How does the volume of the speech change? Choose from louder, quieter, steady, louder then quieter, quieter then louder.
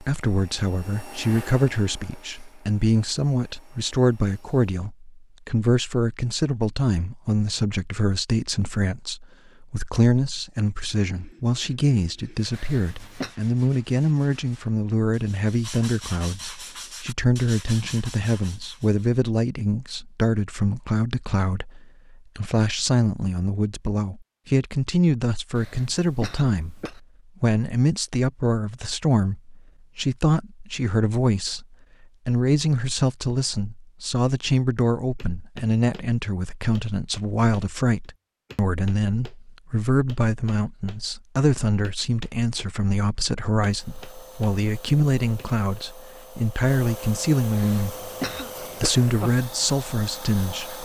steady.